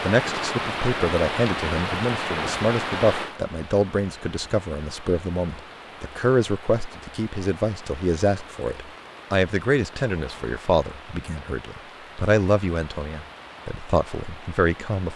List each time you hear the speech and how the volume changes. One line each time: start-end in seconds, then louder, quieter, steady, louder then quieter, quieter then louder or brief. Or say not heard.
0.0-15.1 steady.